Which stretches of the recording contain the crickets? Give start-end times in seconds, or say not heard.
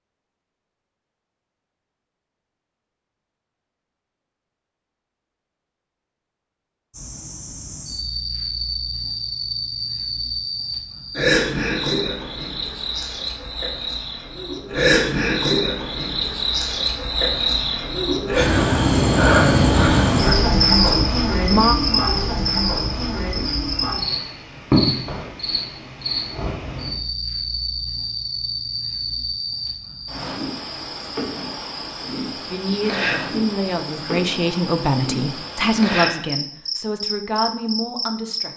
6.9-38.5.